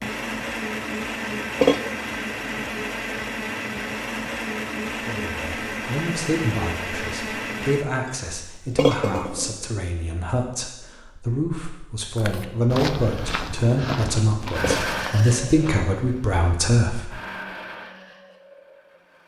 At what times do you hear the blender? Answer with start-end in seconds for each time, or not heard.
0.0-7.8, 14.5-19.2.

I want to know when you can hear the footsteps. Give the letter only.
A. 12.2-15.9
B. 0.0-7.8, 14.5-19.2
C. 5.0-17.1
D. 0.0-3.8
A.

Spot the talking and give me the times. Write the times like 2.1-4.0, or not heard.
5.0-17.1.